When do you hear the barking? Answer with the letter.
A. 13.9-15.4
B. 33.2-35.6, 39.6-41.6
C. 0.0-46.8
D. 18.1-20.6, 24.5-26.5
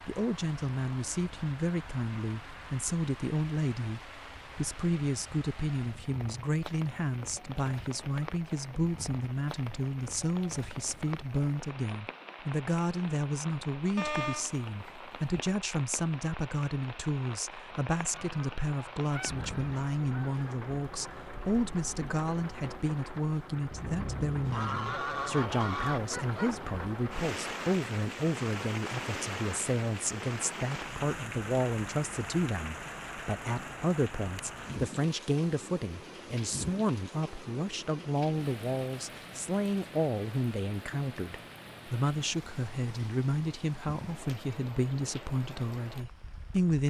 A.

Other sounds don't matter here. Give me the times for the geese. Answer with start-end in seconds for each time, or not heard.
18.1-20.6, 24.5-26.5.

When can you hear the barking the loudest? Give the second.
14 s.